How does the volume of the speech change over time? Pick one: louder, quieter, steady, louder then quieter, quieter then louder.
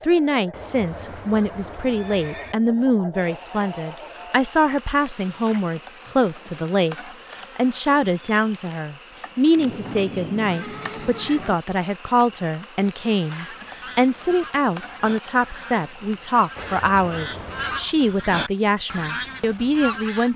steady.